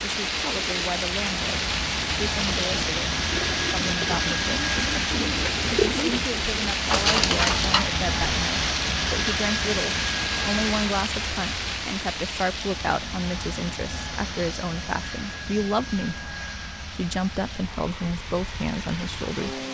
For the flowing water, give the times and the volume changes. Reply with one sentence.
You can hear the flowing water from 0.0 to 19.6 s, getting quieter.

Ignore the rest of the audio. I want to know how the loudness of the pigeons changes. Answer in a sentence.
The volume of the pigeons goes up.